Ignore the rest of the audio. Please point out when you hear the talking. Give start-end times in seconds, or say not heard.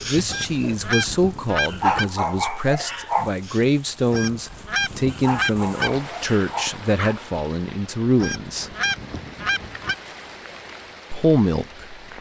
0.1-8.8, 11.1-12.1.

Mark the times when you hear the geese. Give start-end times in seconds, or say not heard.
0.2-2.1, 4.1-6.0, 8.2-9.9.